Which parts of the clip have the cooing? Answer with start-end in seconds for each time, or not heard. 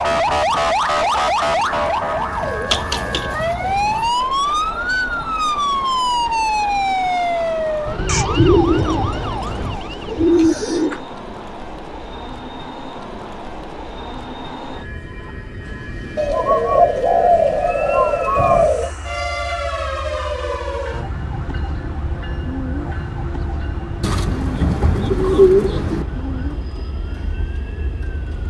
2.3-4.1, 8.1-11.0, 16.1-18.9, 24.0-26.1.